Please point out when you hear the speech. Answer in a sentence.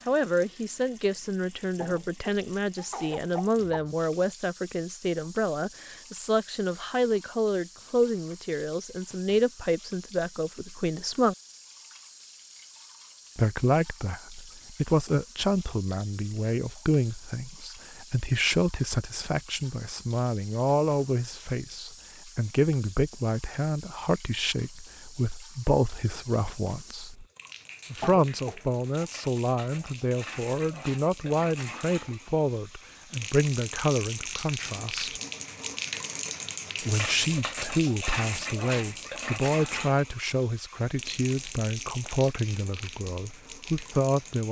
The speech can be heard from 0.1 to 11.3 s, from 13.3 to 27.2 s, from 27.9 to 35.2 s and from 36.9 to 44.4 s.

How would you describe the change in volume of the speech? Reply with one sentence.
The volume of the speech stays about the same.